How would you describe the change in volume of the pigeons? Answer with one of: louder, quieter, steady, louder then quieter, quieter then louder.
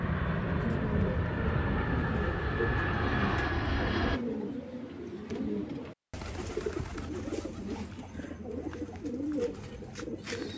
steady.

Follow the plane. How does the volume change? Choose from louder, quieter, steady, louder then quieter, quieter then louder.
steady.